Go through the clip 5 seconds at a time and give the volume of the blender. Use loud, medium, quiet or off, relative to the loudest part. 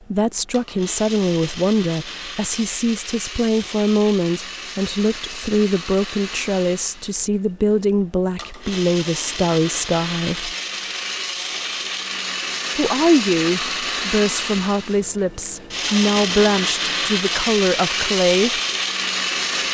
medium, medium, loud, loud.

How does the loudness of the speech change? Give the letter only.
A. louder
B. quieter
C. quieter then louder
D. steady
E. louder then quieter
D.